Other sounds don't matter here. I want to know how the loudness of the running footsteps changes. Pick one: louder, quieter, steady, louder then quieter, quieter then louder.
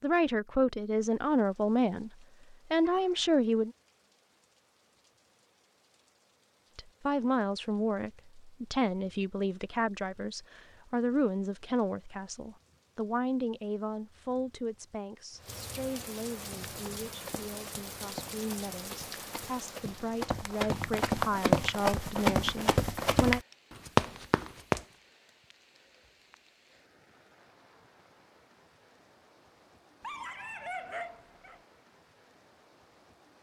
louder.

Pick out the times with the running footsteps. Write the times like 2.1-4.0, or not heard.
16.4-24.8.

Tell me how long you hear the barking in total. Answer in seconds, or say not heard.
2 s.